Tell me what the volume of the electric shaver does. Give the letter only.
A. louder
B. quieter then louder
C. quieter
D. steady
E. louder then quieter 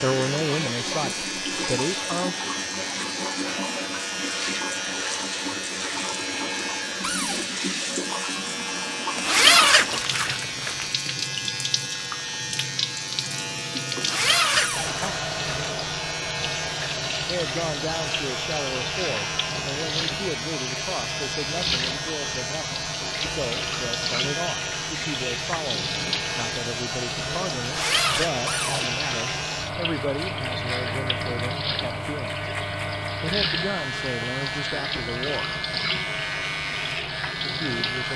D.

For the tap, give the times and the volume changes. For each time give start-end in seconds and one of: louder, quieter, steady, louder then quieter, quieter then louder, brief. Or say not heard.
0.0-38.1 steady.